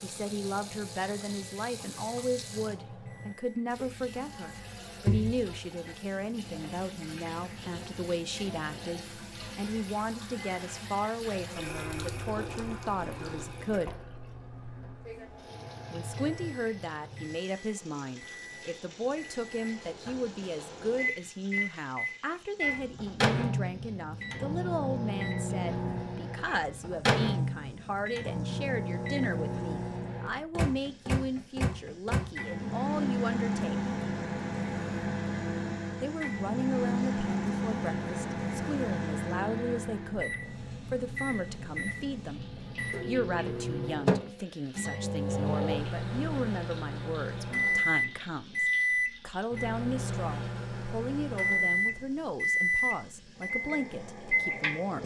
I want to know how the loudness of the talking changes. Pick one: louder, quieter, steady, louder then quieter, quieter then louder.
steady.